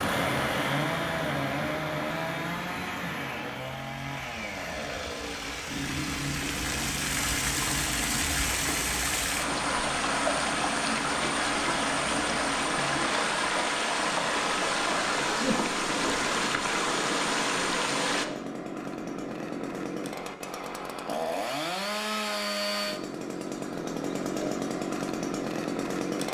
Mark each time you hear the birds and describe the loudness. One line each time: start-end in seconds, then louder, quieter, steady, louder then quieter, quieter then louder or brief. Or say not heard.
not heard.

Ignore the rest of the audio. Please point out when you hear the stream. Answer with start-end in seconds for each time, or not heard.
0.0-18.2.